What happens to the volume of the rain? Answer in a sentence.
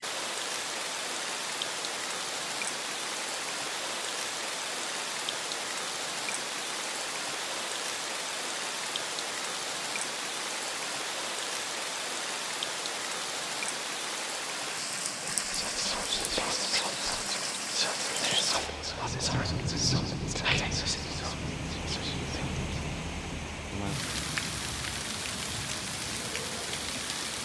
The volume of the rain stays about the same.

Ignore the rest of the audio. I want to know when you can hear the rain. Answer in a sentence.
The rain can be heard from 0.0 to 27.4 s.